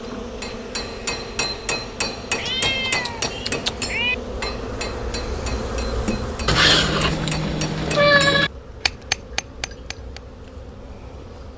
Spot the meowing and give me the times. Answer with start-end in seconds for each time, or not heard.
2.4-4.2, 6.5-8.5.